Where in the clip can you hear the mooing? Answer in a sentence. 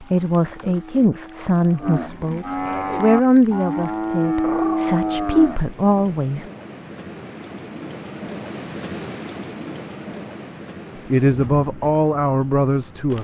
The mooing can be heard from 0.0 to 5.6 s.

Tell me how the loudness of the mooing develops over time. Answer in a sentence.
The volume of the mooing goes up.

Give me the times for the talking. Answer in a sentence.
You can hear the talking from 0.0 to 6.5 s and from 11.1 to 13.2 s.